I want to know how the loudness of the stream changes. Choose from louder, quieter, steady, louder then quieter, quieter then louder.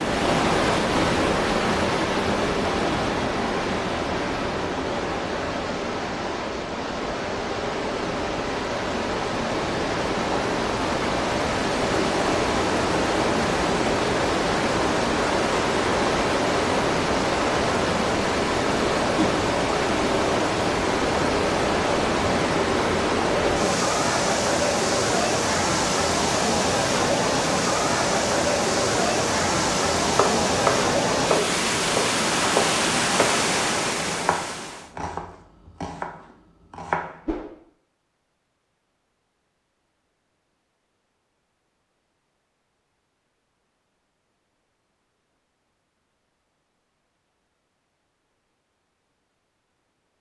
steady.